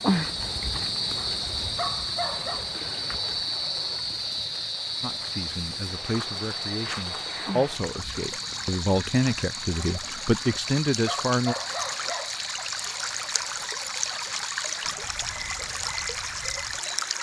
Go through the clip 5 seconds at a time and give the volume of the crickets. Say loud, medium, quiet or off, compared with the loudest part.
loud, medium, medium, quiet.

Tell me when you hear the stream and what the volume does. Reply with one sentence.
You can hear the stream from 0.0 to 17.1 s, getting louder.